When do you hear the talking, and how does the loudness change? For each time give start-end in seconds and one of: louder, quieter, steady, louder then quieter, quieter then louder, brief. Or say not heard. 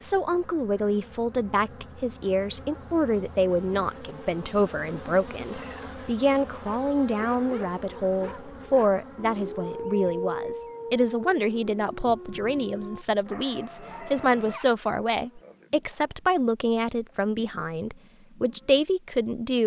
0.0-19.6 steady.